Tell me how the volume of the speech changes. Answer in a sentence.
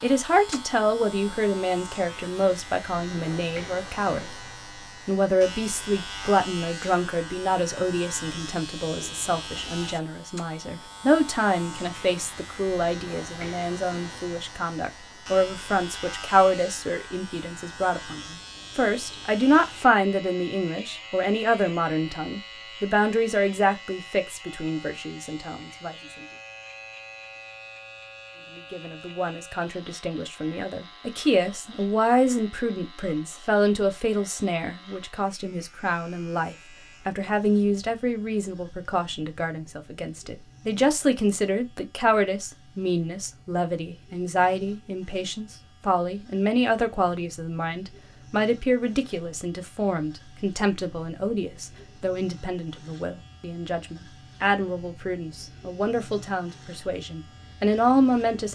The loudness of the speech stays about the same.